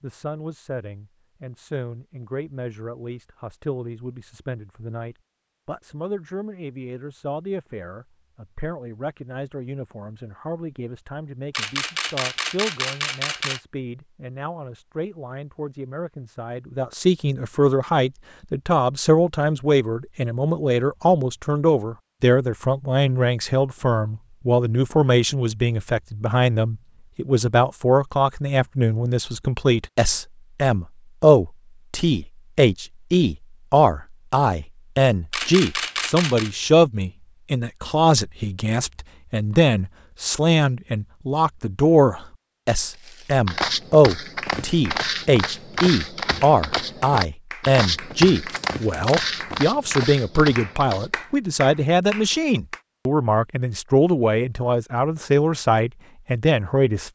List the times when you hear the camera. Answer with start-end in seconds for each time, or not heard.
11.5-13.6, 35.3-36.5, 48.5-49.2.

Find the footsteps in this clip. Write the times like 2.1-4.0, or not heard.
42.9-51.4.